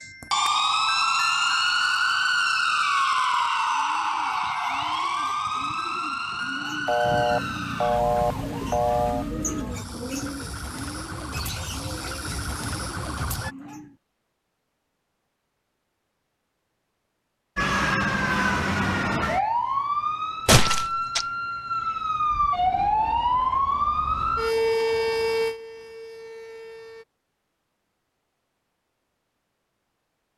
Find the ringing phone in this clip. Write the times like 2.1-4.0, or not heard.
6.8-9.2.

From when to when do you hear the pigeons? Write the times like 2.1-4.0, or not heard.
3.7-13.9.